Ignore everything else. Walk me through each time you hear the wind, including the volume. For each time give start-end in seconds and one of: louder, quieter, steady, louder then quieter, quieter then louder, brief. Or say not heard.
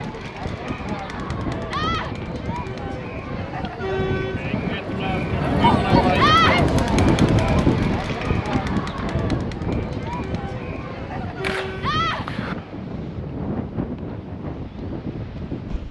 0.0-15.8 louder then quieter.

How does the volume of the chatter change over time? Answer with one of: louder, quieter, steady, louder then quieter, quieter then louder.
louder then quieter.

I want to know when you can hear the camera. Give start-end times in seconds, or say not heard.
11.4-12.6.